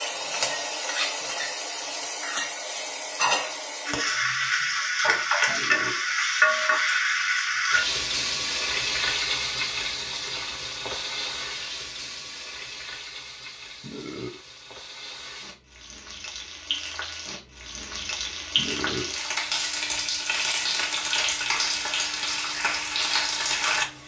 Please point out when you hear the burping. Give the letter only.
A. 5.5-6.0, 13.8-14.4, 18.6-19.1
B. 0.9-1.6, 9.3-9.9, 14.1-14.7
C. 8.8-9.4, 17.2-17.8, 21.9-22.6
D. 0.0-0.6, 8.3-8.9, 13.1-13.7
A.